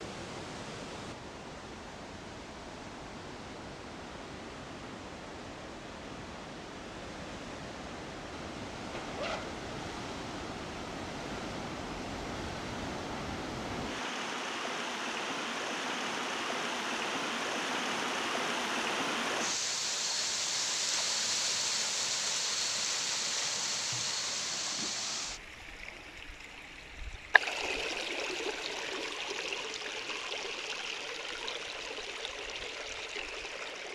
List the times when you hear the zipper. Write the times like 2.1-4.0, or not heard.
8.9-9.6.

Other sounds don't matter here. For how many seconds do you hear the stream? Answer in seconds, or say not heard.
34 s.